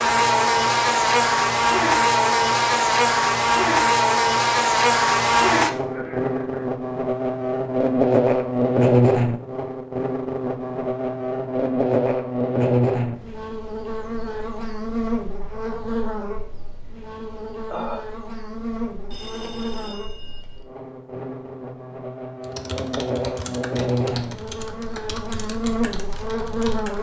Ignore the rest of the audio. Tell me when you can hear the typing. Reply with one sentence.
You can hear the typing from 22.4 to 26.9 s.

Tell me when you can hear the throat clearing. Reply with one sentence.
You can hear the throat clearing from 5.8 to 6.7 s and from 17.6 to 18.1 s.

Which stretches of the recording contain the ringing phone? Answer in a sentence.
The ringing phone can be heard from 19.1 to 20.5 s.